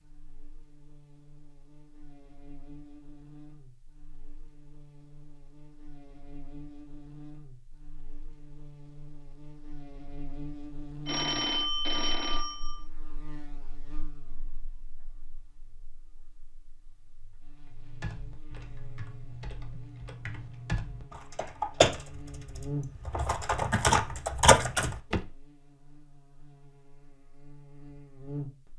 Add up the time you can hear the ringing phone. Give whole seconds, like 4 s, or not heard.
2 s.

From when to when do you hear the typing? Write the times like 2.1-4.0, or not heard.
17.7-25.2.